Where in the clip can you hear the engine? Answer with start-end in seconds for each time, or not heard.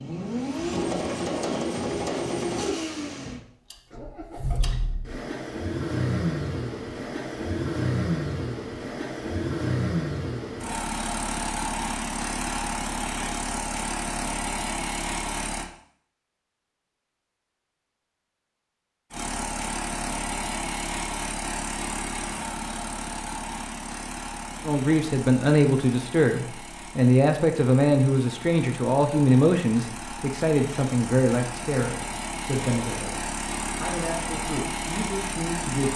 0.0-15.7, 19.1-35.9.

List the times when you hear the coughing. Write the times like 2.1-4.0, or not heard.
not heard.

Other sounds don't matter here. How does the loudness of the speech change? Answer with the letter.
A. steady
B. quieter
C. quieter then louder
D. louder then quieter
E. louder
B.